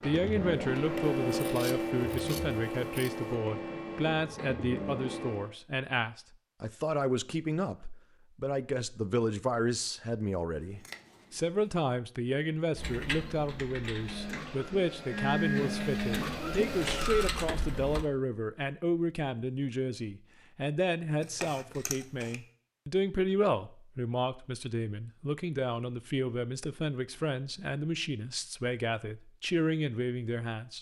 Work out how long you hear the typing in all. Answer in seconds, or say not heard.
5 s.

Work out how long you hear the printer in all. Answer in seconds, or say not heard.
9 s.